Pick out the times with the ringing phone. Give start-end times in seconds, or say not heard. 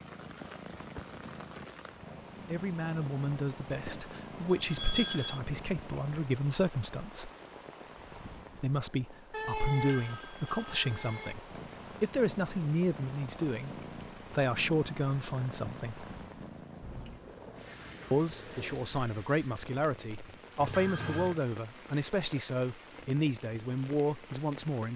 4.5-5.4, 9.3-11.3, 20.6-21.4.